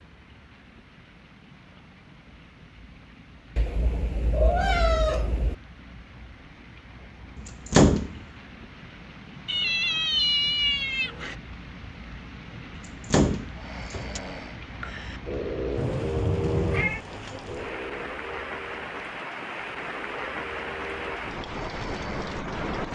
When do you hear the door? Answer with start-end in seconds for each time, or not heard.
7.3-8.2, 12.8-14.2.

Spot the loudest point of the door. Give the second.
8 s.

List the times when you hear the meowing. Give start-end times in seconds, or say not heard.
3.5-5.5, 9.4-11.3, 15.8-17.0.